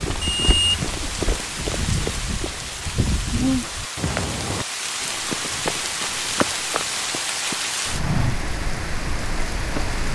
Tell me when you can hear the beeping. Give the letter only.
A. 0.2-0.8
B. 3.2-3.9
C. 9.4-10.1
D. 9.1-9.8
A.